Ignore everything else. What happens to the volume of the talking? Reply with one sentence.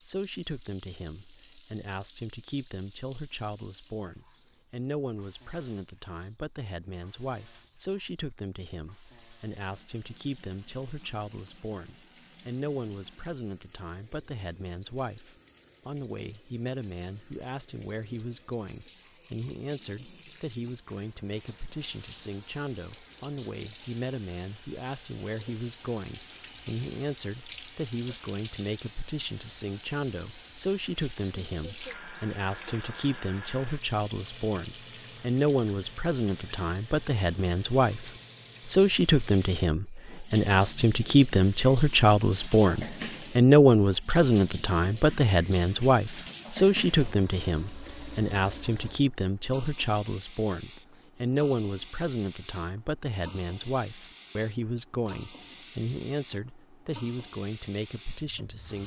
The volume of the talking goes up, then down.